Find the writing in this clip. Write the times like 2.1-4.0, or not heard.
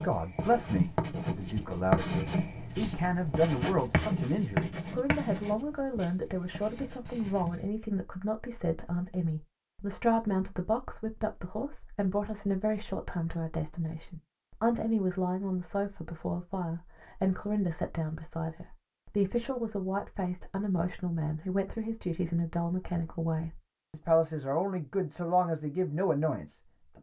0.0-7.7.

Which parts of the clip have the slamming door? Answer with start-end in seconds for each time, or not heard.
not heard.